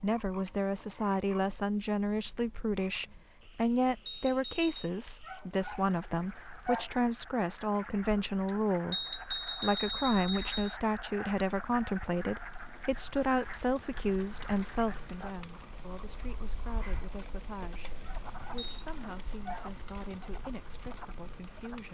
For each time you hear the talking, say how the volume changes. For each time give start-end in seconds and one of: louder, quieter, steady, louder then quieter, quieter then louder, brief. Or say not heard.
0.0-21.8 quieter.